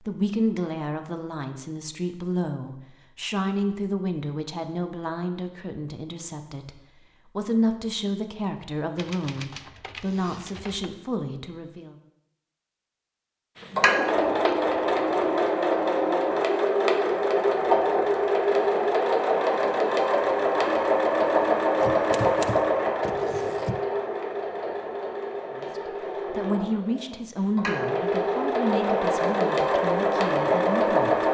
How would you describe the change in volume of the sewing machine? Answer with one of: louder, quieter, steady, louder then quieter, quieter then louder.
quieter then louder.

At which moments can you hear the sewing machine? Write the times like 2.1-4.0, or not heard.
13.6-31.2.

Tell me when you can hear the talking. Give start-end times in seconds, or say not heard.
0.1-11.9, 25.6-31.2.